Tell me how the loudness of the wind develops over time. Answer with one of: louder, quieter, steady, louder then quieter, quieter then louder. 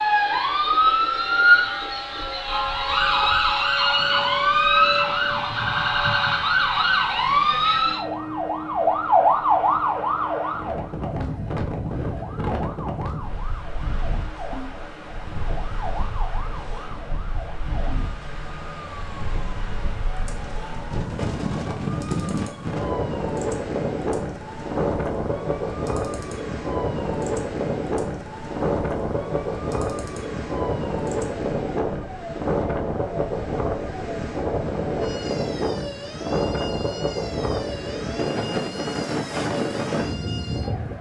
louder.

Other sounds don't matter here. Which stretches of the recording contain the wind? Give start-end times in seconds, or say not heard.
0.0-40.9.